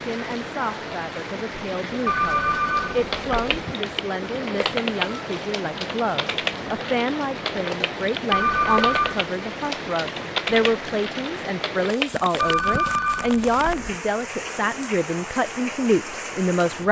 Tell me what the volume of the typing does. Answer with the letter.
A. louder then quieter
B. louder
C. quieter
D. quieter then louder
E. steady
E.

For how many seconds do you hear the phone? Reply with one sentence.
You can hear the phone for 4 seconds altogether.